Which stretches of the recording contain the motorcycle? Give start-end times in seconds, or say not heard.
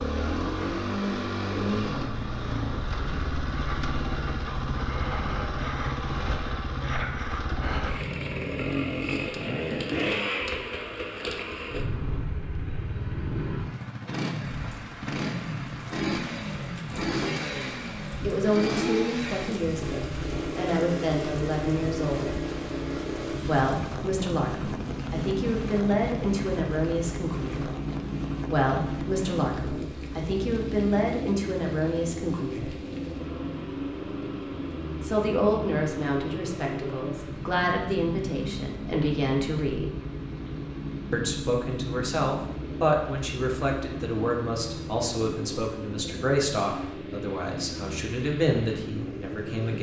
0.0-49.7.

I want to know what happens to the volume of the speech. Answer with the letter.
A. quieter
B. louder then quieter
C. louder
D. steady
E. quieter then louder
D.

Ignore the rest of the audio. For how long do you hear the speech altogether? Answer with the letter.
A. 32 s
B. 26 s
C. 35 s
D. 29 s
B.